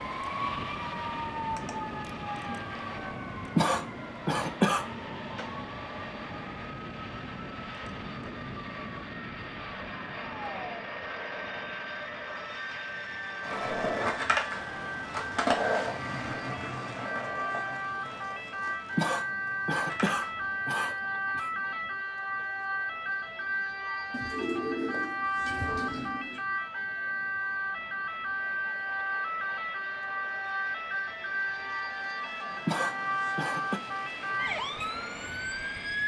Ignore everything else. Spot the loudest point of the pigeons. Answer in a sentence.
The loudest moment of the pigeons is at 25 seconds.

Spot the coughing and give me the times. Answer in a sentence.
You can hear the coughing from 3.5 to 4.8 s, from 18.9 to 21.5 s and from 32.6 to 33.8 s.